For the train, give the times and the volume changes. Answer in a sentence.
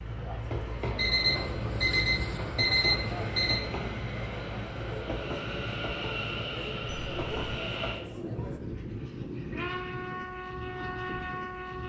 The train can be heard from 0.0 to 11.8 s, at a steady volume.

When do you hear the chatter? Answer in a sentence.
You can hear the chatter from 0.0 to 8.6 s.